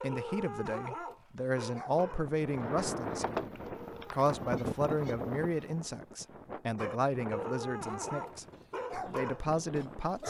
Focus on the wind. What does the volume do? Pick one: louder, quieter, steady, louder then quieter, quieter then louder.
quieter.